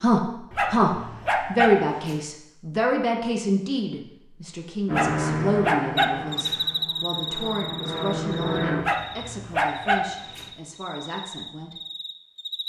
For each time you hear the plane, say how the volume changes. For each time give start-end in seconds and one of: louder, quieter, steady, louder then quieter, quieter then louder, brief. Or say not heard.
4.8-8.8 quieter then louder.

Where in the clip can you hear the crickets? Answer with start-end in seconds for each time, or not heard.
6.0-12.6.